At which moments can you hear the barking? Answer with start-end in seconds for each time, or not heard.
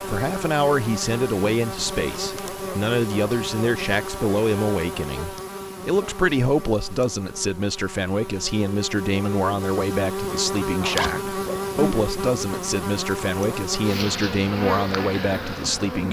not heard.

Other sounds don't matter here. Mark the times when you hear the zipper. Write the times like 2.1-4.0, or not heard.
10.8-11.9.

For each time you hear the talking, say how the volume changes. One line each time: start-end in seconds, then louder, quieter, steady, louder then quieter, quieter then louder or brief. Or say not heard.
0.1-16.0 steady.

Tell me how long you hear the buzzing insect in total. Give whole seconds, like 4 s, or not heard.
16 s.